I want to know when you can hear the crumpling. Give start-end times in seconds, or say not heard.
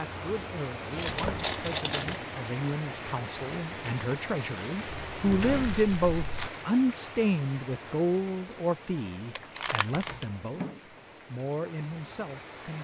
0.9-2.4, 4.5-6.7, 9.3-10.2.